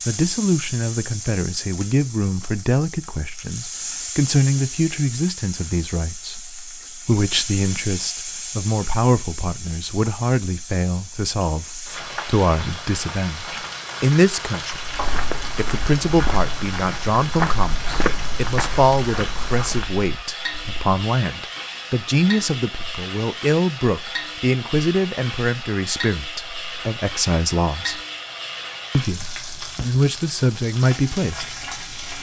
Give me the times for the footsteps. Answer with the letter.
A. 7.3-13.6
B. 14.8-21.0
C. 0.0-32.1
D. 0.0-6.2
B.